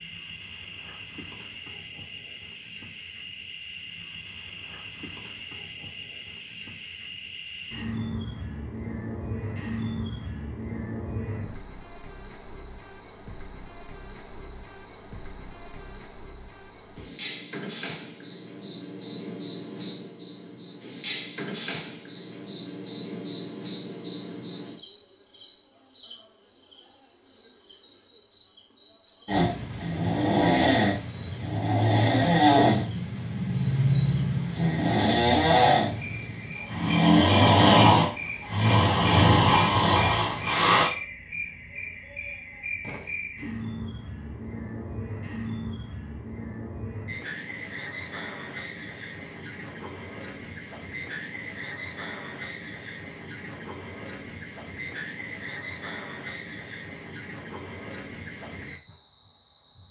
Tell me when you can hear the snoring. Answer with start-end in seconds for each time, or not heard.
29.2-40.9.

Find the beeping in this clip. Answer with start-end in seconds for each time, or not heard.
not heard.